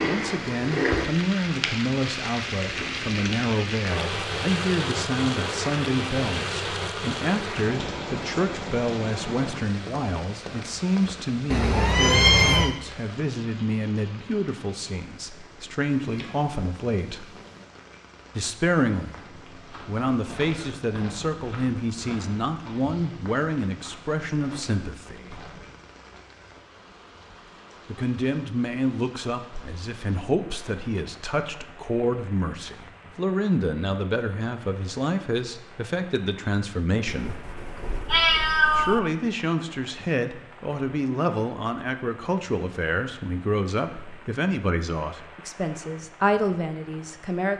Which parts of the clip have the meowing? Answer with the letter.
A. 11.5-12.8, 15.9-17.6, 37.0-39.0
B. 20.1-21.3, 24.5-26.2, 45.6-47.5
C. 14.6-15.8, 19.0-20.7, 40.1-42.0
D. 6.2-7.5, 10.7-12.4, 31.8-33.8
A.